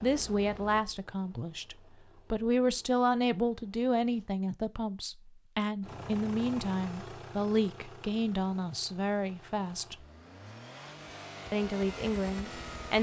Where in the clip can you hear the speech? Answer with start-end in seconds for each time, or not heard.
0.0-10.1, 11.5-12.9.